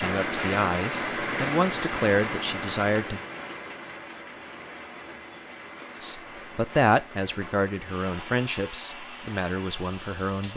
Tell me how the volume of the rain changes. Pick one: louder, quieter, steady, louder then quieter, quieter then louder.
quieter.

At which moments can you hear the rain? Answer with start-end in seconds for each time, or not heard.
0.0-10.5.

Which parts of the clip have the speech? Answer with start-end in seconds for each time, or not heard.
0.0-3.2, 6.0-10.5.